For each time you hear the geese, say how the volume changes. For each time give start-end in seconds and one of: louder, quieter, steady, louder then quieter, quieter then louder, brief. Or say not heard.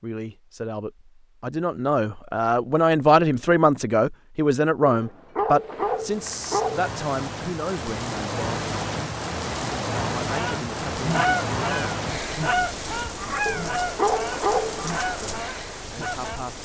10.2-16.4 quieter.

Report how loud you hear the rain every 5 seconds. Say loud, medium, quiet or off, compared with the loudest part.
off, loud, loud, medium.